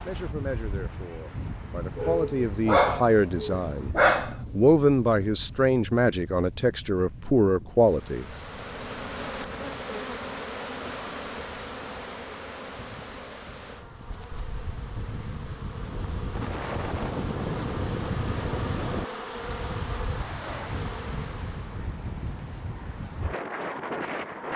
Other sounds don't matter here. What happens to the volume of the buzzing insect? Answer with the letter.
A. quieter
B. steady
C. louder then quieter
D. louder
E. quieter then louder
E.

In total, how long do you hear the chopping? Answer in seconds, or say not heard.
not heard.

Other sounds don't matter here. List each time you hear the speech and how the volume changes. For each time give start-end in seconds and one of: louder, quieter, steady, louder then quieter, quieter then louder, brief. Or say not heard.
0.0-8.2 louder.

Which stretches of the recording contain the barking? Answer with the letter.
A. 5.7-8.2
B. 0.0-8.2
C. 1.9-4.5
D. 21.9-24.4
C.